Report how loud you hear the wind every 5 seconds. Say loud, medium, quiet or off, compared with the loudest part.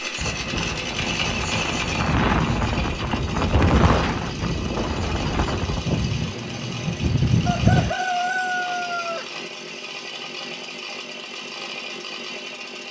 loud, loud, off.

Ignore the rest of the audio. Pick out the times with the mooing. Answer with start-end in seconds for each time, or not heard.
not heard.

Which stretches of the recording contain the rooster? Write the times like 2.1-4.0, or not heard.
7.5-9.3.